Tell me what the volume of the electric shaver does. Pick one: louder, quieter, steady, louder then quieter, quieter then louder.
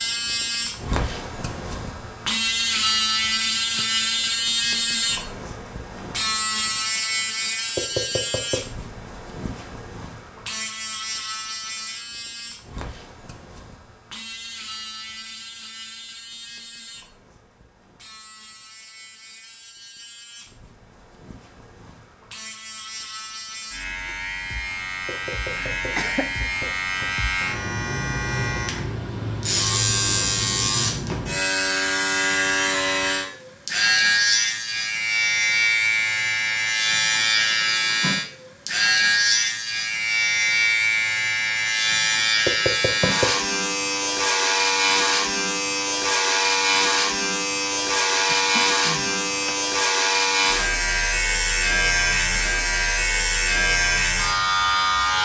quieter then louder.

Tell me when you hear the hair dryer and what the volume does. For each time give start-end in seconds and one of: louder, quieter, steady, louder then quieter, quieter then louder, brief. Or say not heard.
not heard.